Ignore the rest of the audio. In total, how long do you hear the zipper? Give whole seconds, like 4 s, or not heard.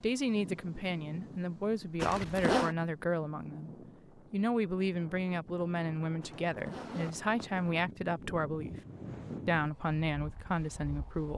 2 s.